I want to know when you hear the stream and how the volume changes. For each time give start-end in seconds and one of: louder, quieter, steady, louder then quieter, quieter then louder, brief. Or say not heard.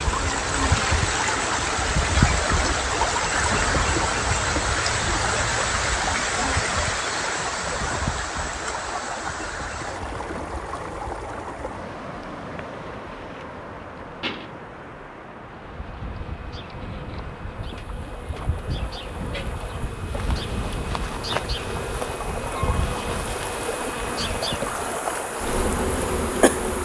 0.0-26.7 quieter then louder.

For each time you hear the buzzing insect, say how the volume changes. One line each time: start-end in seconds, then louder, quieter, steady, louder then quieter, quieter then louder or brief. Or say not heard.
0.0-26.7 quieter then louder.